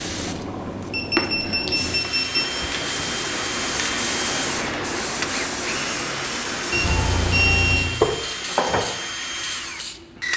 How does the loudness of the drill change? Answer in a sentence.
The volume of the drill stays about the same.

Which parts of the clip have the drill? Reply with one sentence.
The drill can be heard from 1.8 to 10.3 s.